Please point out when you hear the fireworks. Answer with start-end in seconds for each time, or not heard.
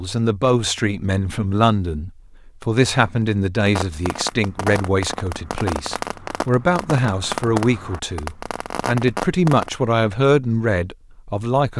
3.6-9.7.